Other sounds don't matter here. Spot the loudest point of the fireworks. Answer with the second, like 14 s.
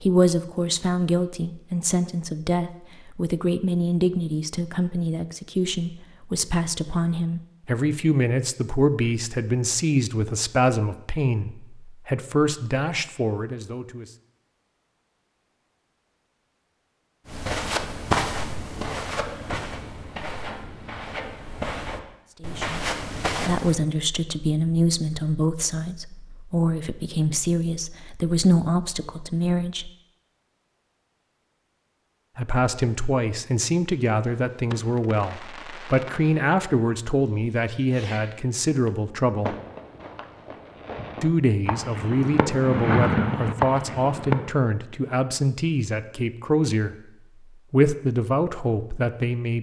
43 s.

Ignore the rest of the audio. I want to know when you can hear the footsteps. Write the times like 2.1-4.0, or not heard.
17.2-23.8.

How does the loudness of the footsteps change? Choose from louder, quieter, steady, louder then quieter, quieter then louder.
quieter then louder.